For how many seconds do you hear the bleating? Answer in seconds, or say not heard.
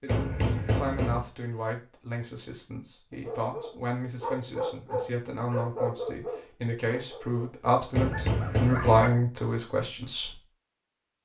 2 s.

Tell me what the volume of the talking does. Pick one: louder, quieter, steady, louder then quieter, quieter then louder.
louder.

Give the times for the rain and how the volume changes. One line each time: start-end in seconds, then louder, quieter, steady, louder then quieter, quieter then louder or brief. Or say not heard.
not heard.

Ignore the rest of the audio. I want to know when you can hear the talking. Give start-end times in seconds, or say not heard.
0.0-10.4.